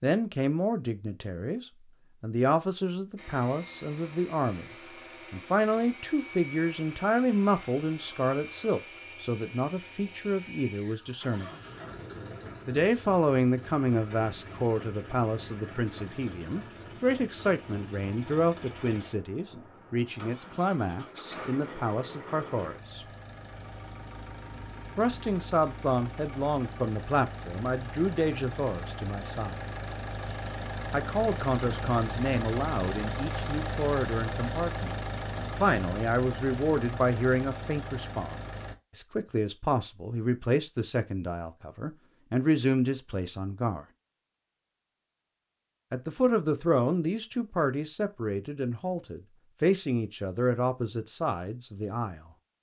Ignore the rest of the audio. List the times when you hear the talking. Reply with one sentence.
The talking can be heard from 0.0 to 4.7 s, from 5.3 to 11.5 s, from 12.7 to 23.1 s, from 24.9 to 29.6 s, from 30.9 to 43.9 s and from 45.9 to 52.3 s.